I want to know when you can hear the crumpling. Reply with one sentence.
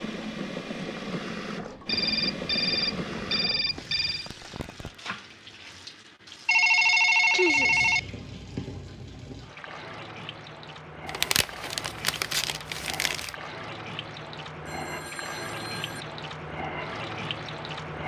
The crumpling can be heard from 4.0 to 5.0 s and from 11.1 to 13.3 s.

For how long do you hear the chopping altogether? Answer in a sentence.
You can't hear the chopping here.